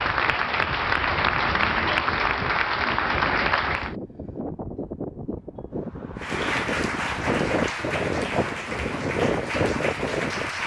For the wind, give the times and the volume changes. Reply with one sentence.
The wind can be heard from 0.0 to 10.6 s, getting louder.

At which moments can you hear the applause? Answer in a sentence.
You can hear the applause from 0.0 to 4.0 s and from 6.2 to 10.6 s.